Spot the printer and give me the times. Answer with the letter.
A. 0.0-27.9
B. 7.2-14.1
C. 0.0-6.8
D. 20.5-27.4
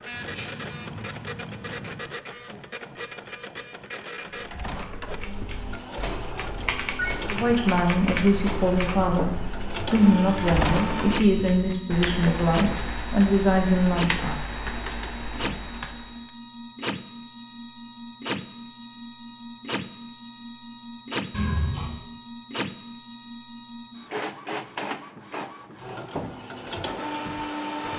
A.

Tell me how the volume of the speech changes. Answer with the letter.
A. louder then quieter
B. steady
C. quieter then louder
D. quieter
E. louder
B.